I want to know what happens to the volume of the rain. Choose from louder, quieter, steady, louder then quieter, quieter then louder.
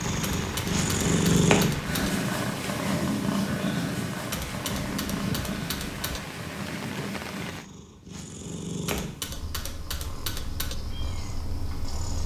steady.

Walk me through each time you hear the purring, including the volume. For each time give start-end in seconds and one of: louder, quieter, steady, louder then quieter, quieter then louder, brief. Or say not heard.
0.0-12.2 quieter.